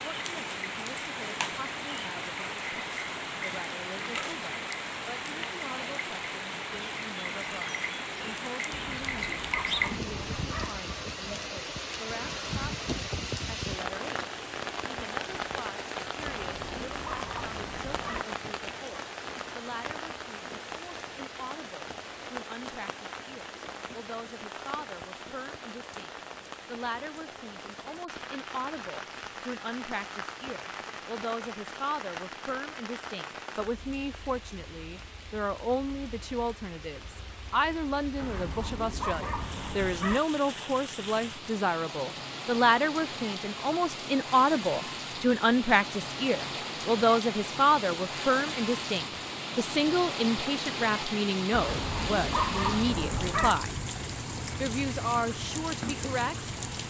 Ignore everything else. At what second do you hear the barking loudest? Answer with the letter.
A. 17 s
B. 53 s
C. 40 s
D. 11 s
B.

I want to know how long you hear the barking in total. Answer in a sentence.
The barking can be heard for 8 seconds in total.